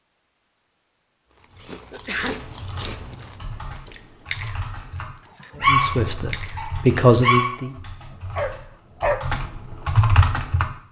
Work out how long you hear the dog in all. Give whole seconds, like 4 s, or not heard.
4 s.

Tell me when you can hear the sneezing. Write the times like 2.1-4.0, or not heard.
1.9-2.4.